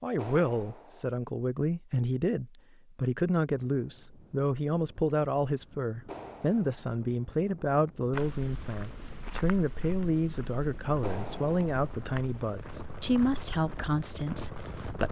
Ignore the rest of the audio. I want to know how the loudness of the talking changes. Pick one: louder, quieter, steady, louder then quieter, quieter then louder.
steady.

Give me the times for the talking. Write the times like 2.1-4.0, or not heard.
0.0-15.0.